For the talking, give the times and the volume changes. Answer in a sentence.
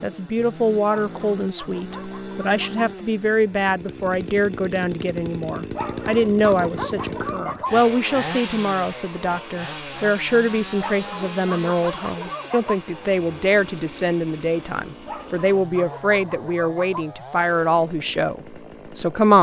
You can hear the talking from 0.0 to 19.3 s, at a steady volume.